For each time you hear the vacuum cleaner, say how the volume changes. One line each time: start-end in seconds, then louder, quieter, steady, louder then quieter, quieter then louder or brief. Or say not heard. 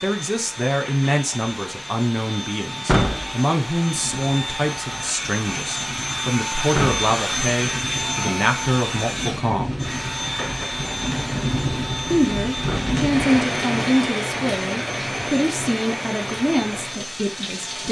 0.0-17.8 louder then quieter.